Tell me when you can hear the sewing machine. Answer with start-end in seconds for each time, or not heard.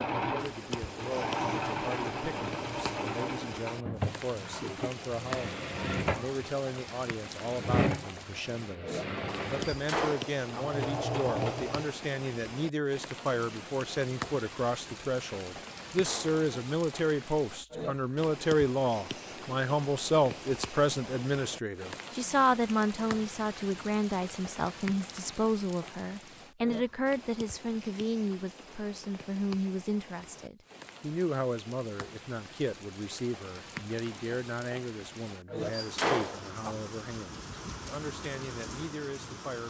0.0-11.9.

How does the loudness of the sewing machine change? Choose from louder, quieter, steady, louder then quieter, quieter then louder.
steady.